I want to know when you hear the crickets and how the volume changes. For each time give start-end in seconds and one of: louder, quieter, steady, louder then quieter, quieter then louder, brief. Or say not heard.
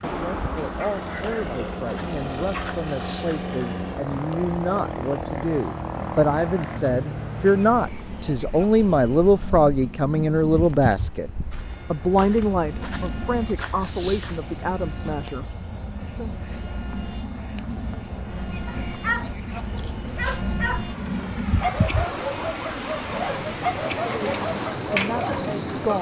0.0-25.9 louder.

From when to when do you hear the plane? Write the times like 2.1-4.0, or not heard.
0.0-25.9.